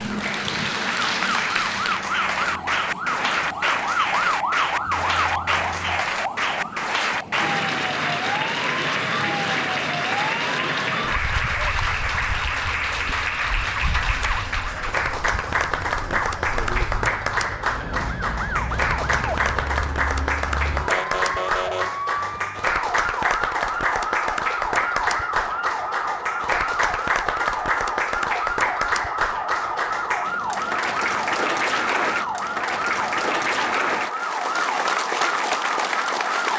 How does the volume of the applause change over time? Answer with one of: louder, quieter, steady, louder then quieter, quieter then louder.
steady.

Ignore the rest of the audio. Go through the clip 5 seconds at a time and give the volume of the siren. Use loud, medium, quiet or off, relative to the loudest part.
loud, loud, medium, medium, loud, loud, loud, loud.